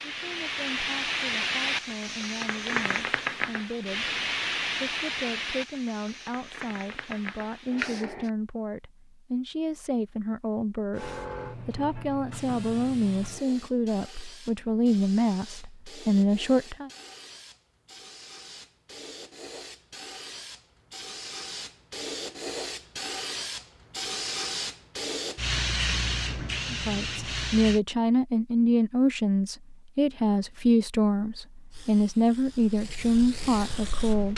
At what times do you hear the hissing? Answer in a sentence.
The hissing can be heard from 0.0 to 8.3 s, from 10.9 to 27.8 s and from 31.7 to 34.3 s.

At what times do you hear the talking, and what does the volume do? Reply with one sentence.
You can hear the talking from 0.1 to 16.9 s, getting louder; and from 26.7 to 34.3 s, at a steady volume.